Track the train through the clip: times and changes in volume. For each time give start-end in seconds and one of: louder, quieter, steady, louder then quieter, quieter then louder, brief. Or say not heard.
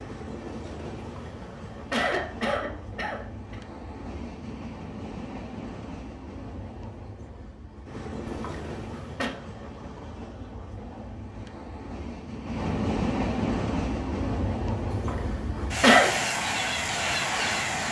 0.0-17.8 louder.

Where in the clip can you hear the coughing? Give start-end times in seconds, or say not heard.
1.2-3.6, 8.2-9.3, 14.9-16.1.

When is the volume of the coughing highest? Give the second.
16 s.